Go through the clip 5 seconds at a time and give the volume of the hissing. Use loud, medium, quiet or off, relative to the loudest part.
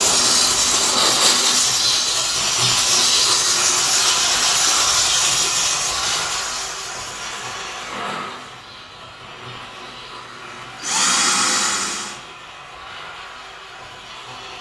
loud, medium, quiet.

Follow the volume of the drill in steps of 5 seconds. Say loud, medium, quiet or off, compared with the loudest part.
off, quiet, loud.